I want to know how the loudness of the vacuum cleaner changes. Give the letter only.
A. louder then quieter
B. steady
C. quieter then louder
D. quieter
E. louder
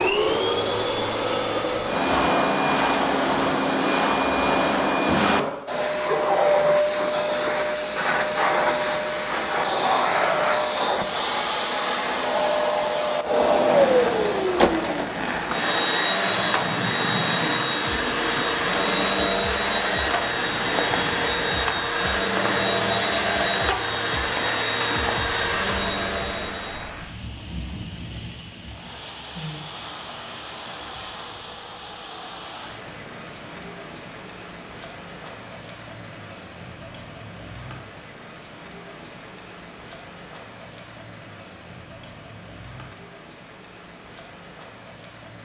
B.